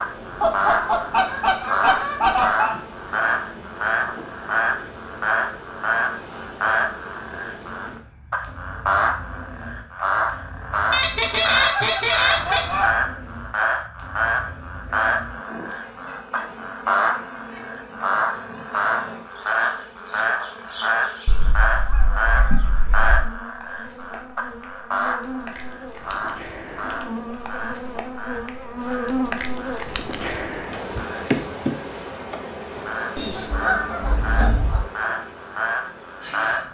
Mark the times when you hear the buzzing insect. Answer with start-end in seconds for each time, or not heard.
0.0-36.6.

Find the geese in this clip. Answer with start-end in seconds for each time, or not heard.
0.4-2.8, 10.9-12.9, 21.2-23.3, 33.1-34.9.